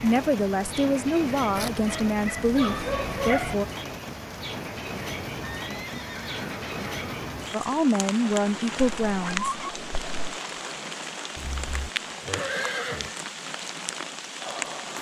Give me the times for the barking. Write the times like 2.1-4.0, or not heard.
1.6-3.5, 9.1-10.4.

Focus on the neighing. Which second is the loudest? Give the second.
13 s.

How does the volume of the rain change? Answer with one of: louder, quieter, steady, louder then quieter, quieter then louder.
steady.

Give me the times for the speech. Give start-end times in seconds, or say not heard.
0.0-3.6, 7.5-9.6.